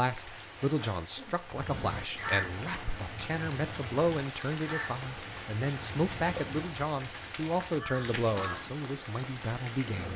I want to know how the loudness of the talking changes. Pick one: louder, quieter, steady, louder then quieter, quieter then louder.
steady.